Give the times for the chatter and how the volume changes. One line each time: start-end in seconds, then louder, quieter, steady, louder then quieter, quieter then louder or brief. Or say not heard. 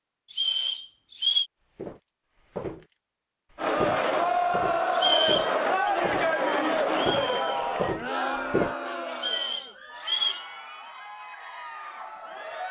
3.5-12.6 quieter.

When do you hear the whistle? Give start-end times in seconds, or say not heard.
0.3-1.4, 5.0-5.9, 9.2-10.4.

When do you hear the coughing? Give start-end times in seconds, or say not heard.
not heard.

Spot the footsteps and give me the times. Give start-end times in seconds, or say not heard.
1.8-8.8.